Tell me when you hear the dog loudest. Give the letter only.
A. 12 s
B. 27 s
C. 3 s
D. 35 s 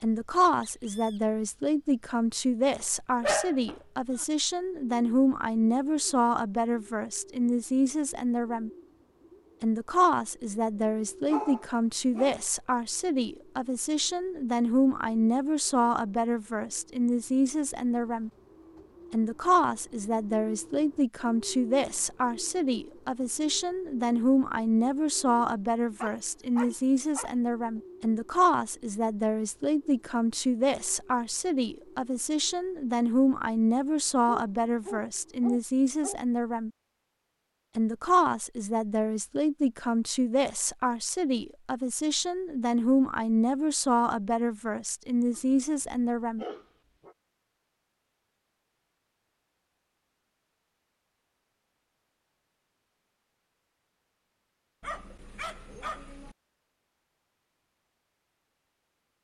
C.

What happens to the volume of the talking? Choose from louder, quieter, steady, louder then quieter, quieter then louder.
steady.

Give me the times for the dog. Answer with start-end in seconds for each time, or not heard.
2.8-4.2, 11.2-12.4, 26.0-27.3, 34.2-36.2, 45.3-47.1, 54.8-56.4.